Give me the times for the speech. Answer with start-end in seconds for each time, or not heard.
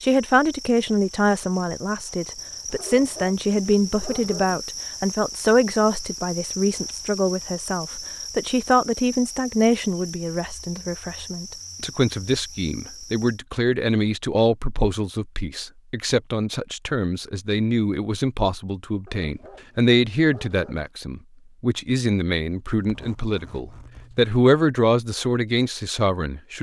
0.0-26.5.